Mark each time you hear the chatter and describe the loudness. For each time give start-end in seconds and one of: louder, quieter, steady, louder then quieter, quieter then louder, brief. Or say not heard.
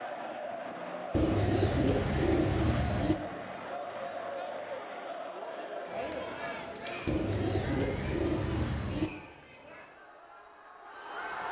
0.0-11.4 quieter.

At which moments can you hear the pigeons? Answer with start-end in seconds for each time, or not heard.
1.1-3.1, 7.0-9.1.